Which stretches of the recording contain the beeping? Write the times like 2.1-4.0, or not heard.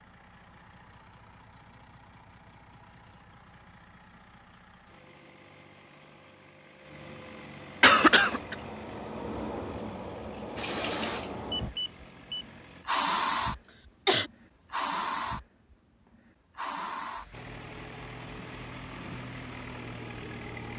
11.5-12.4.